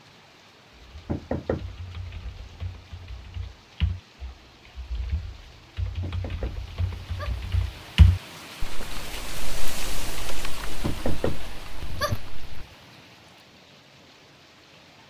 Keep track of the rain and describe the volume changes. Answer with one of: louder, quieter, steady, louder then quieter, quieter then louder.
louder then quieter.